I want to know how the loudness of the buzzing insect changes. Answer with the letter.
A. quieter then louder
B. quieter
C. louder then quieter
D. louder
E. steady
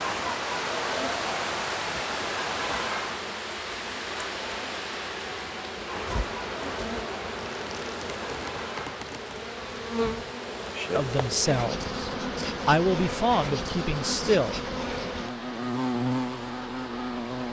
D.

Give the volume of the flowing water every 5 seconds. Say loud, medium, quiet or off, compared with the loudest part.
loud, medium, medium, medium.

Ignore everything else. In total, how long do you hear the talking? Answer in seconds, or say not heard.
4 s.